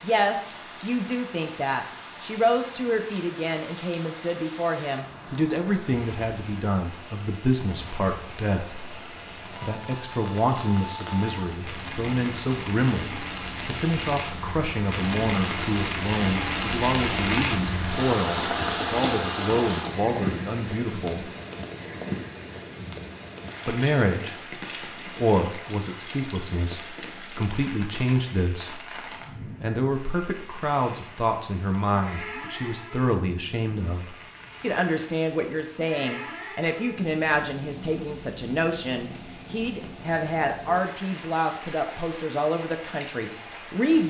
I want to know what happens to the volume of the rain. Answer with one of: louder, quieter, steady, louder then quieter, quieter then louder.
louder then quieter.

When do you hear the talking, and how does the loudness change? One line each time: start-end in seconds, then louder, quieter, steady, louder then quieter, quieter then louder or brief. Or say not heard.
0.0-21.3 steady
23.6-44.0 steady.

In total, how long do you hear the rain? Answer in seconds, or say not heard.
44 s.